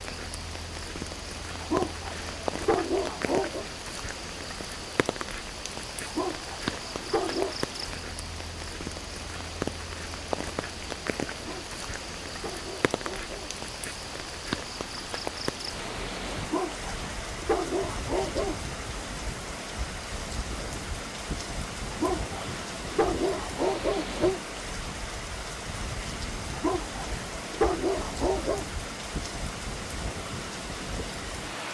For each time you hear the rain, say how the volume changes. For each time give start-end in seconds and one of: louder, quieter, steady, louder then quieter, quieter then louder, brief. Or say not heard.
0.0-31.6 steady.